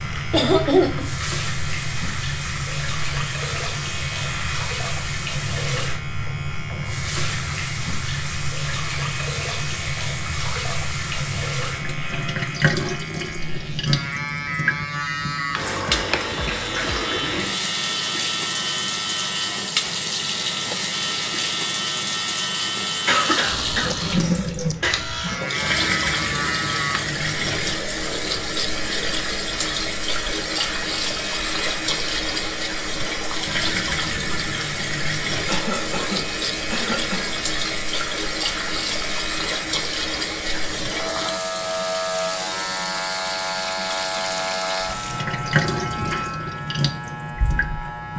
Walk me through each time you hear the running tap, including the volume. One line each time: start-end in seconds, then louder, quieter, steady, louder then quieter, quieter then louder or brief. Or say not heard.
0.0-48.1 steady.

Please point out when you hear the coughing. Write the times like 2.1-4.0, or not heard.
0.3-1.1, 23.1-25.0, 35.5-37.4.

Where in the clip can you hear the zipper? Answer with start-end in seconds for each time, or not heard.
not heard.